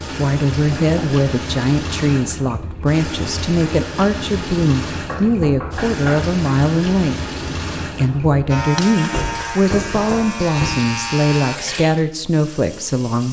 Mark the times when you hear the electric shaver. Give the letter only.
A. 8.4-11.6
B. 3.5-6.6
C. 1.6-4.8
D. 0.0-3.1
A.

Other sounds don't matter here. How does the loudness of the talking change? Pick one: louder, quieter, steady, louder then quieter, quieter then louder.
steady.